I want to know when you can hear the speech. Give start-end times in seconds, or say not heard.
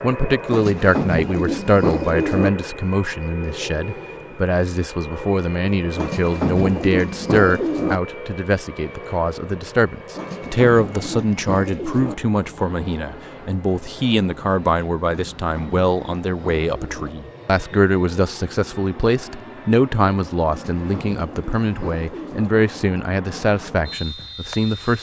0.0-24.9.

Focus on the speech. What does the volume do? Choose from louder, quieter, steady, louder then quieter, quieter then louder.
steady.